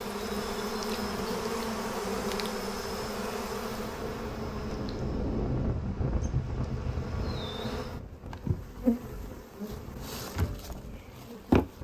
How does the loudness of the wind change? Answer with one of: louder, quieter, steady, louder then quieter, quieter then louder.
louder then quieter.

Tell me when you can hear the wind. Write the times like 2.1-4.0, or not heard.
0.0-11.7.